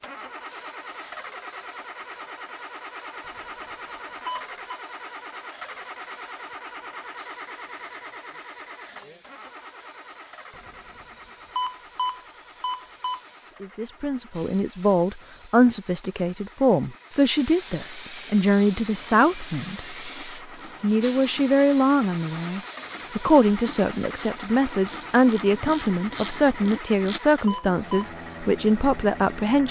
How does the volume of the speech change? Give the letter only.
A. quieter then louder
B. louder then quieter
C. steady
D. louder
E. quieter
C.